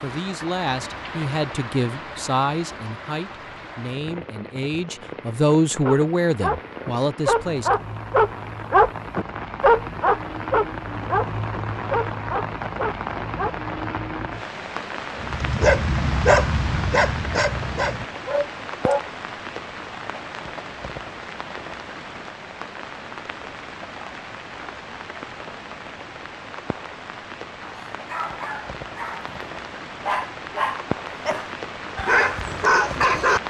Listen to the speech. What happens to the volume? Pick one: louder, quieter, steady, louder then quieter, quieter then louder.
quieter then louder.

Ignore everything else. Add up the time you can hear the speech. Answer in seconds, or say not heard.
8 s.